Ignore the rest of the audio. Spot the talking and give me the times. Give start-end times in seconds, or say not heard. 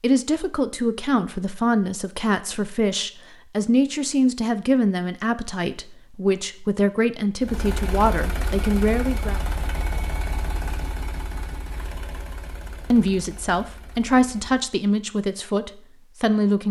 0.0-9.4, 12.9-16.6.